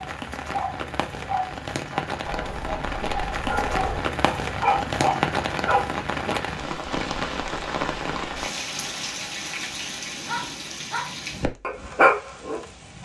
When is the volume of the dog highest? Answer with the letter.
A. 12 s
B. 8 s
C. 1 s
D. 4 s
A.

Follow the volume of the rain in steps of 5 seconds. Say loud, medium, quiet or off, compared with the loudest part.
loud, loud, medium.